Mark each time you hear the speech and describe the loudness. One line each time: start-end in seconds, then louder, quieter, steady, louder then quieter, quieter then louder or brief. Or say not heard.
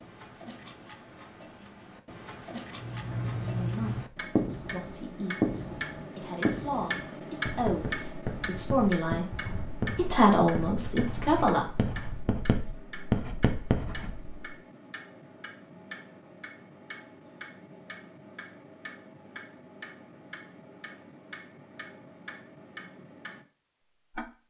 3.3-11.7 louder.